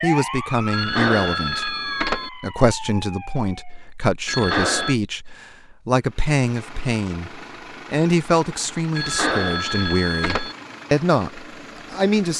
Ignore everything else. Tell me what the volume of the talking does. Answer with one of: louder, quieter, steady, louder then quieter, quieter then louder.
steady.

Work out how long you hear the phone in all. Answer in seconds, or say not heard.
4 s.